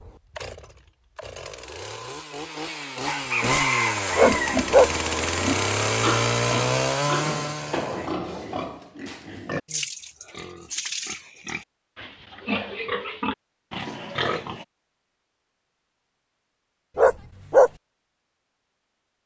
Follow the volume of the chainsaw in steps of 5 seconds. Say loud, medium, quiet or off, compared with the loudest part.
medium, loud, off, off.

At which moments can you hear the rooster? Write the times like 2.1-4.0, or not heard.
3.0-4.7.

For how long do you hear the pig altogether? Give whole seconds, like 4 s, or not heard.
11 s.